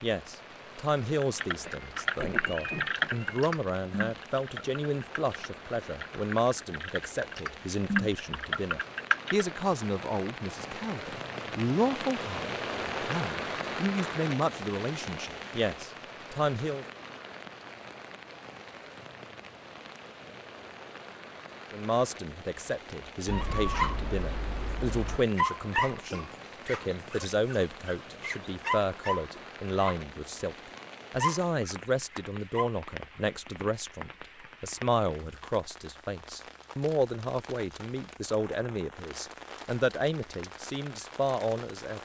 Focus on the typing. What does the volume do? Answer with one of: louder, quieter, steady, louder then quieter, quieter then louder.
quieter then louder.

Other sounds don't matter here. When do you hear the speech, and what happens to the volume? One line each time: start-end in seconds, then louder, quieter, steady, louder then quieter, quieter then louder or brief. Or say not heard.
0.0-16.9 steady
21.7-42.0 steady.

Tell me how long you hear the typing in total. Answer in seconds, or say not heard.
8 s.